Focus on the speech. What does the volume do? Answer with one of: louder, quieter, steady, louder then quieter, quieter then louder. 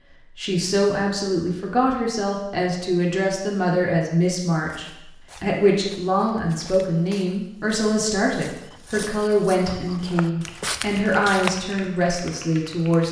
steady.